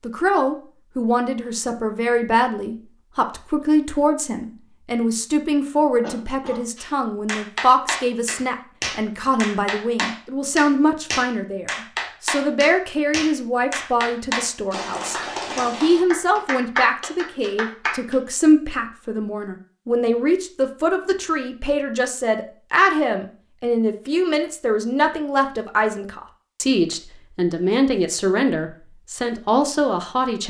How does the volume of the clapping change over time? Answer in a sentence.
The volume of the clapping stays about the same.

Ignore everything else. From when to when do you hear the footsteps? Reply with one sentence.
You can't hear the footsteps here.